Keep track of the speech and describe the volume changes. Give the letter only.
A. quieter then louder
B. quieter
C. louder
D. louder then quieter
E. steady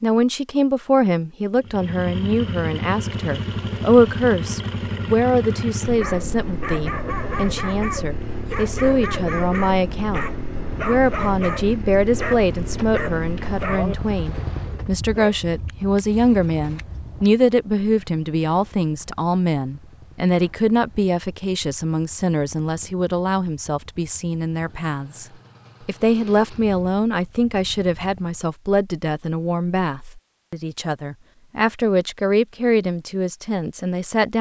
E.